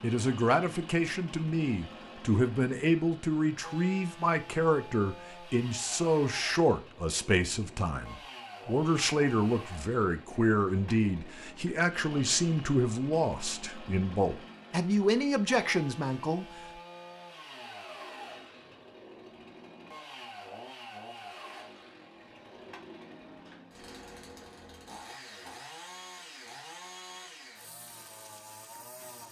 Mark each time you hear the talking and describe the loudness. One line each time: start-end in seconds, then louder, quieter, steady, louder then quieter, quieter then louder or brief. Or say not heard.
0.0-16.4 steady.